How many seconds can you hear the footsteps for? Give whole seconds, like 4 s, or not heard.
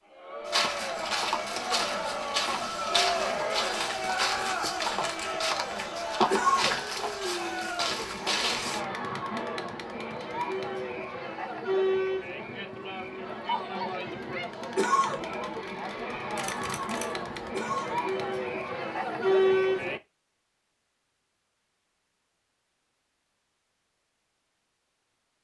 8 s.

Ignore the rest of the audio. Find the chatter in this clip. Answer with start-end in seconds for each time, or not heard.
0.1-20.0.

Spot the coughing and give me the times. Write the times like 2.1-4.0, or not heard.
6.3-6.8, 14.8-15.2, 17.5-18.1.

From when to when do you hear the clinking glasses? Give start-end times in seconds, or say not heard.
not heard.